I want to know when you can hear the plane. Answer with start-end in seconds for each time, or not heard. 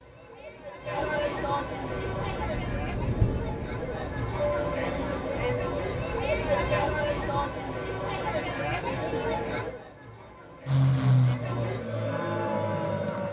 1.9-7.4, 10.7-13.2.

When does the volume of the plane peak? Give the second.
11 s.